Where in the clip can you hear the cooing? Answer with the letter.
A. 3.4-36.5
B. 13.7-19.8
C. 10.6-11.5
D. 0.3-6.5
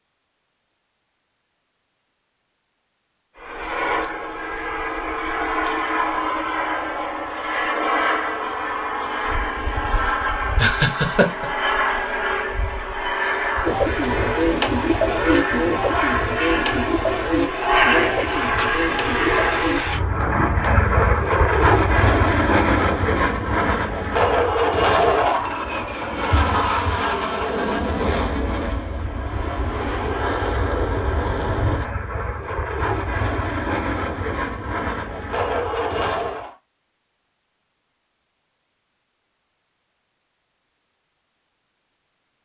B.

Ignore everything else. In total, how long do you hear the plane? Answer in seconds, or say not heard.
33 s.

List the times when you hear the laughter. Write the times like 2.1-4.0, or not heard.
10.6-11.5.